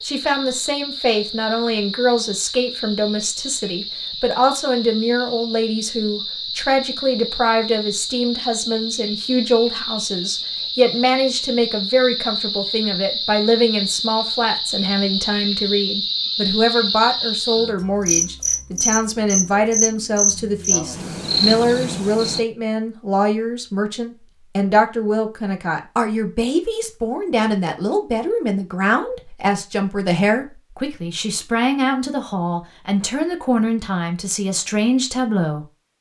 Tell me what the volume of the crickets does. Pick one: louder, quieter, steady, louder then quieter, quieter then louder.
louder.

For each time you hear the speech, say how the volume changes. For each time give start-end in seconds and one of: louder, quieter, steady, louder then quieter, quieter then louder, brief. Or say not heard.
0.0-35.9 steady.